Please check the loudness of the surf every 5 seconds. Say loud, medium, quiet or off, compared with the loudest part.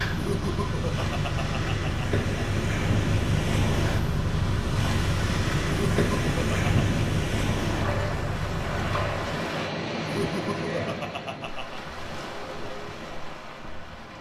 loud, loud, medium.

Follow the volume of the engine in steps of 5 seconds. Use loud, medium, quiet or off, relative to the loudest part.
loud, loud, off.